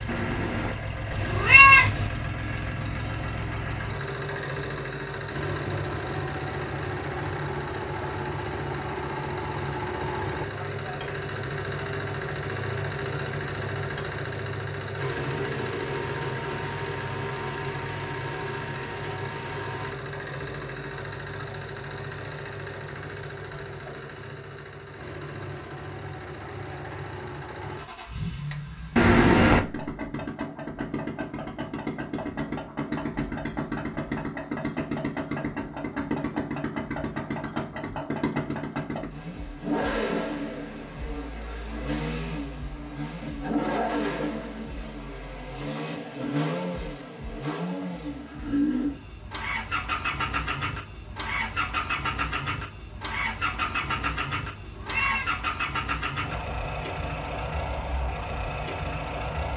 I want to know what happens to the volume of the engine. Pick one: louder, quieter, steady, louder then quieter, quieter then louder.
steady.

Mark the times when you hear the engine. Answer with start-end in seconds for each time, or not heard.
0.0-59.5.